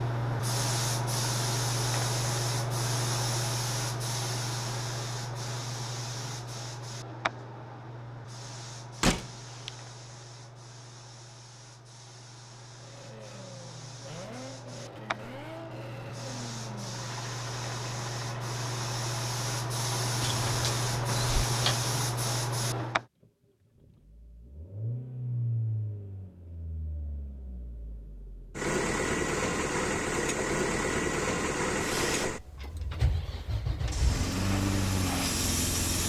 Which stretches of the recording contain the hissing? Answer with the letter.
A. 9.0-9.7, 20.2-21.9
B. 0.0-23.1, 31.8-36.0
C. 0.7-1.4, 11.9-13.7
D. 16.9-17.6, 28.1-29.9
B.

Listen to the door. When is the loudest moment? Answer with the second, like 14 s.
9 s.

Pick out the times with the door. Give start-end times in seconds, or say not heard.
9.0-9.7, 20.2-21.9.